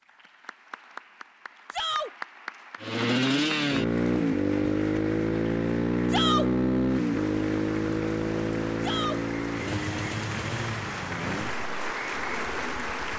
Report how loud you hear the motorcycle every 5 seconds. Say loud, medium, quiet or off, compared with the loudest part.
loud, loud, medium.